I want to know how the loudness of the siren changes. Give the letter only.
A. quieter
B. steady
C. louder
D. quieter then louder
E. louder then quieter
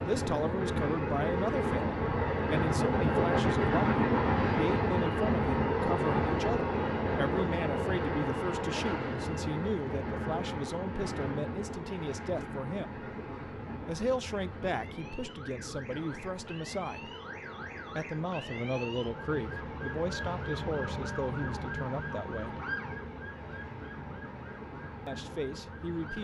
E.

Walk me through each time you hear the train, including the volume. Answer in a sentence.
The train can be heard from 0.0 to 26.1 s, getting quieter.